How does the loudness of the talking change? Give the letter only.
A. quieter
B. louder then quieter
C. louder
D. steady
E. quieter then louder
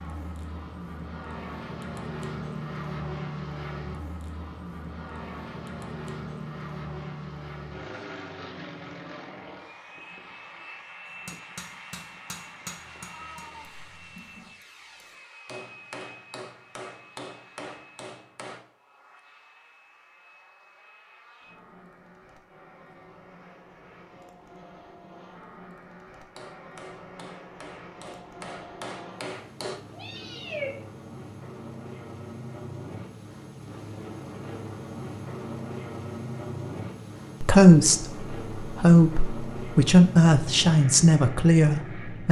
C.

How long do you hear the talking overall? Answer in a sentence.
The talking can be heard for 5 seconds in total.